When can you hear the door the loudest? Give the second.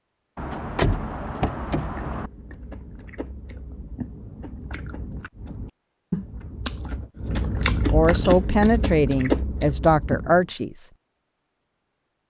1 s.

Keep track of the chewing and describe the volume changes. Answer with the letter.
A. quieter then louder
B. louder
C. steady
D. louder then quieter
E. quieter
B.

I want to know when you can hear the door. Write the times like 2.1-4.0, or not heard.
0.3-2.3.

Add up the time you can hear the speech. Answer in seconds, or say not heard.
3 s.